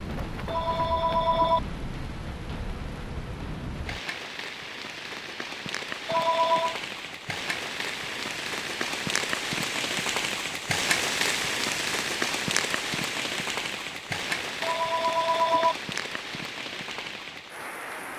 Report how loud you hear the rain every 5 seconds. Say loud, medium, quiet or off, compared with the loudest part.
medium, loud, loud, medium.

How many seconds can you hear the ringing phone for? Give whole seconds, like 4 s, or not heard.
3 s.